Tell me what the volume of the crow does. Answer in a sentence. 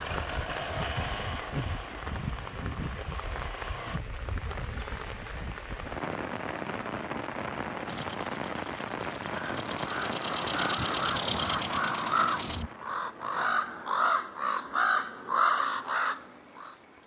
The loudness of the crow goes up.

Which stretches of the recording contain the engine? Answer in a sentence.
The engine can be heard from 0.0 to 4.0 s and from 7.8 to 12.7 s.